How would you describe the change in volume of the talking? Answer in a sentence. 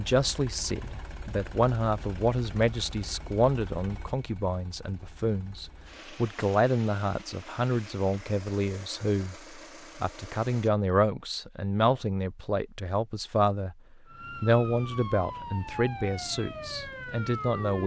The volume of the talking stays about the same.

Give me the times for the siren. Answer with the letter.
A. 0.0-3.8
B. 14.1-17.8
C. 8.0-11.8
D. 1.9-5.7
B.